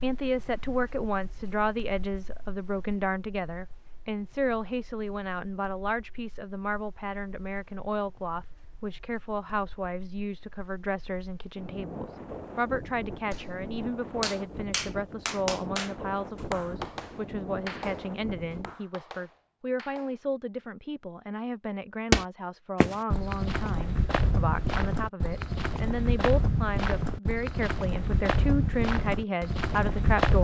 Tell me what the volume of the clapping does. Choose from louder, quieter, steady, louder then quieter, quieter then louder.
quieter.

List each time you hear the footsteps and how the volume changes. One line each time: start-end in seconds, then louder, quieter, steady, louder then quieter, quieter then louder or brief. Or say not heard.
22.1-30.3 steady.